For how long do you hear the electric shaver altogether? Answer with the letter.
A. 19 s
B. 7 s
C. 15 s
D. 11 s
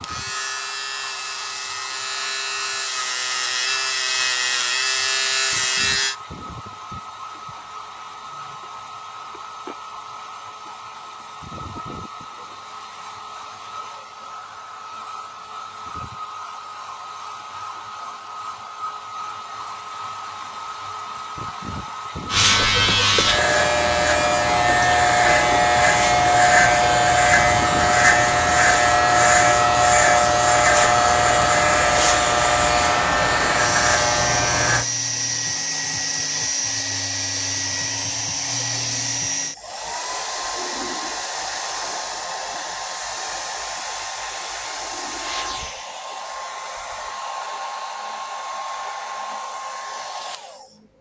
A.